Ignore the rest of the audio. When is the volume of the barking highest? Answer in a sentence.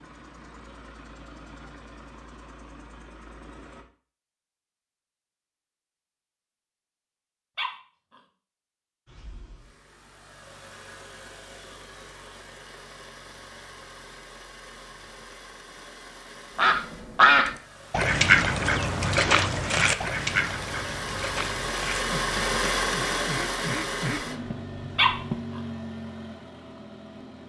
The loudest moment of the barking is at 25 seconds.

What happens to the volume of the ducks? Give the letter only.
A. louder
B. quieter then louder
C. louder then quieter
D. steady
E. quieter
E.